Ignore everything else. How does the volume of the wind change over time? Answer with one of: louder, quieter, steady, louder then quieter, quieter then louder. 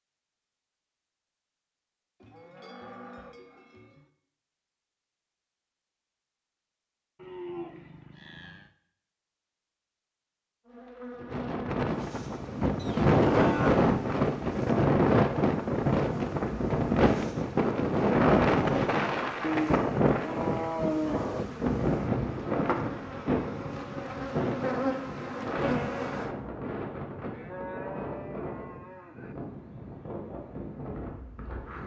quieter.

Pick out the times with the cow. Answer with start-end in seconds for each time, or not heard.
2.2-4.0, 7.2-8.7, 12.8-13.8, 19.4-21.4, 27.3-29.4.